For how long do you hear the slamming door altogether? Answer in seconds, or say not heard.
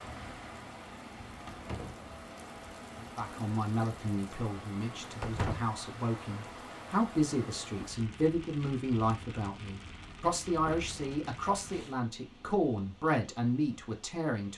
2 s.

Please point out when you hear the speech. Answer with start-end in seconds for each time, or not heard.
3.0-14.5.